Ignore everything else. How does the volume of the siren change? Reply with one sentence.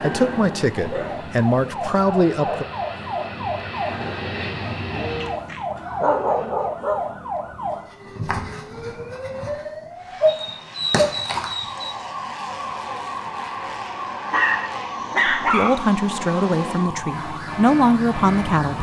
The volume of the siren stays about the same.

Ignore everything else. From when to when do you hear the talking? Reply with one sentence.
The talking can be heard from 0.0 to 2.6 s and from 15.3 to 18.7 s.